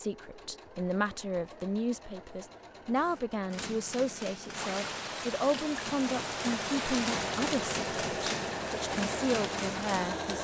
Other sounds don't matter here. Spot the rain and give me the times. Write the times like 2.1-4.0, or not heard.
4.5-10.3.